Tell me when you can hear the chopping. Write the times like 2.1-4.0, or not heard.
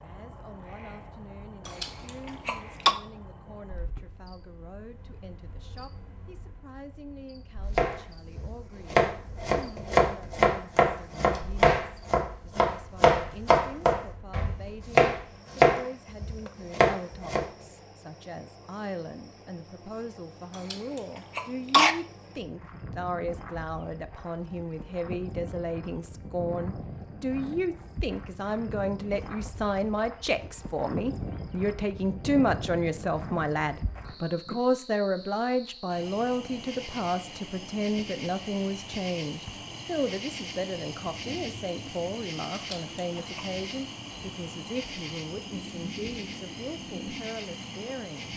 7.8-17.4.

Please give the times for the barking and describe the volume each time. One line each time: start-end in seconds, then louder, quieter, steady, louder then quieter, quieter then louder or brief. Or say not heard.
not heard.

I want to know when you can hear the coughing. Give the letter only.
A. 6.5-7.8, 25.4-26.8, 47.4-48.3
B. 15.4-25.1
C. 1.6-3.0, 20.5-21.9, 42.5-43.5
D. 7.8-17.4
C.